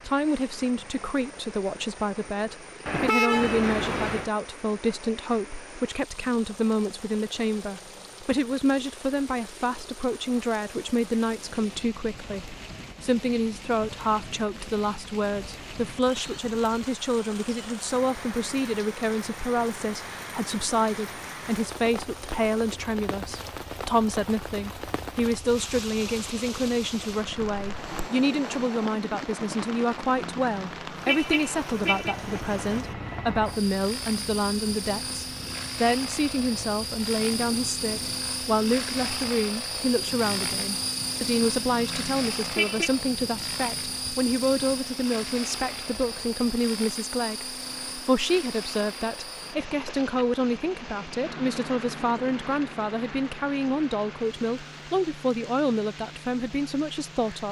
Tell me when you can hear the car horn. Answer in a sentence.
The car horn can be heard from 2.9 to 4.3 s, from 30.2 to 32.1 s and from 41.7 to 42.9 s.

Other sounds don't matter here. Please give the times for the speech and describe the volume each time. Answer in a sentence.
You can hear the speech from 0.1 to 57.4 s, at a steady volume.